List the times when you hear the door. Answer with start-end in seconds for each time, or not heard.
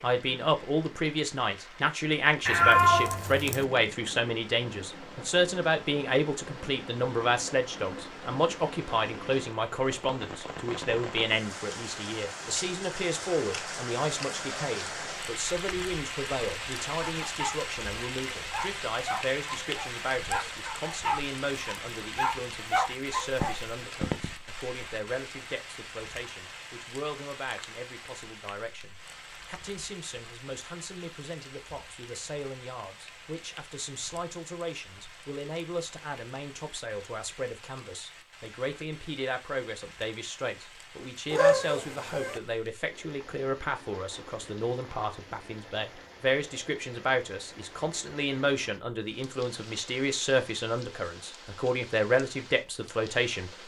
not heard.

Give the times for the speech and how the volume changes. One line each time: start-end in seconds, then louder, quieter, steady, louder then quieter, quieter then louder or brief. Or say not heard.
0.0-53.5 quieter then louder.